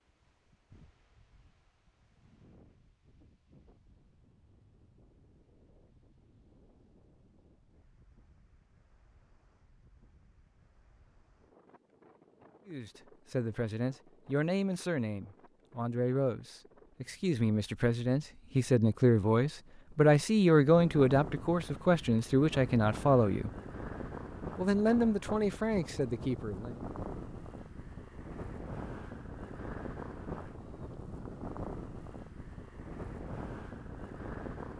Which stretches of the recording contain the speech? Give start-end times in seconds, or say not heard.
12.7-23.5, 24.6-26.8.